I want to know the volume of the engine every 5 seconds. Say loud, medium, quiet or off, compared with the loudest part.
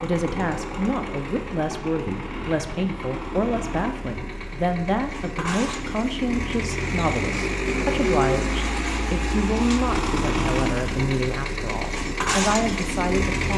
medium, loud, loud.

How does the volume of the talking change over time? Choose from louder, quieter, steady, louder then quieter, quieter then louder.
steady.